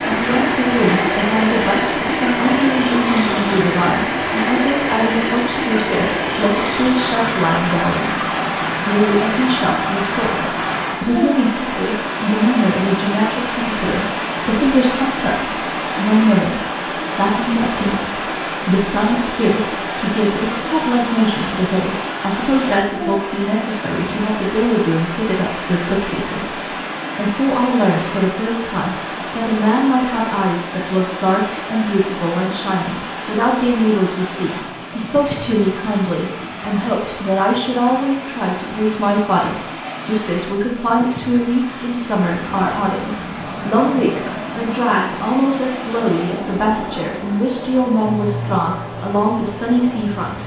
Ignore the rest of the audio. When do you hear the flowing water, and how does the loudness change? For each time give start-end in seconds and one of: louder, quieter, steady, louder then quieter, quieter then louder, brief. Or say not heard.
0.0-50.4 quieter.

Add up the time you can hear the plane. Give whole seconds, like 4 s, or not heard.
8 s.